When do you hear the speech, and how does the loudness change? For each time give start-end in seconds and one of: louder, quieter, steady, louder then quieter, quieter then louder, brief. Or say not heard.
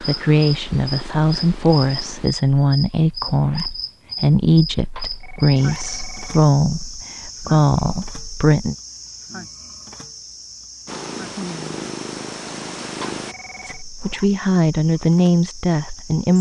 0.0-8.8 steady
13.7-16.3 brief.